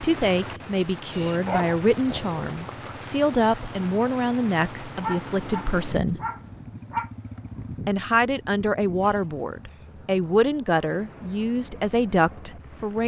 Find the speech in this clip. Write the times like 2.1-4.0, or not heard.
0.0-6.2, 7.8-13.0.